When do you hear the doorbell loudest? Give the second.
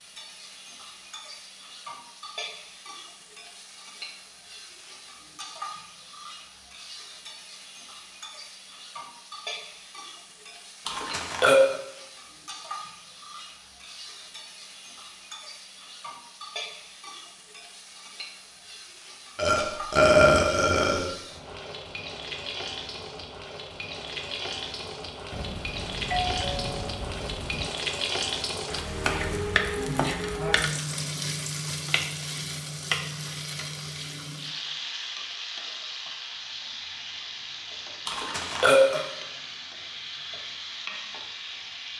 26 s.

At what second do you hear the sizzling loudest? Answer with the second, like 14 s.
30 s.